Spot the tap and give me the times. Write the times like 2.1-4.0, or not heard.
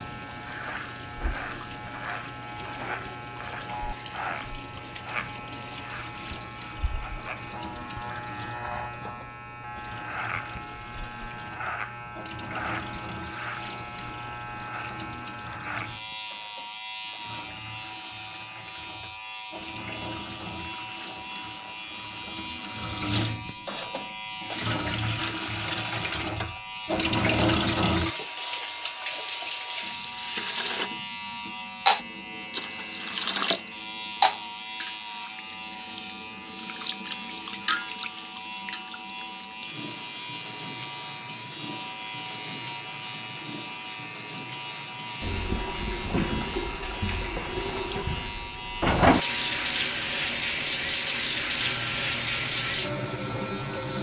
0.0-53.9.